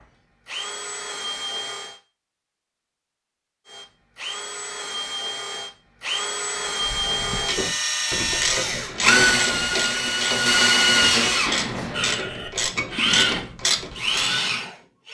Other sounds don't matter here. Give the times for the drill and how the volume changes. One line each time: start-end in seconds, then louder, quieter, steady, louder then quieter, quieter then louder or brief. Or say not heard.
0.0-2.0 brief
3.6-15.0 louder.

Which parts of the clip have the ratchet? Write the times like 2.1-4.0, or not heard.
6.8-14.3.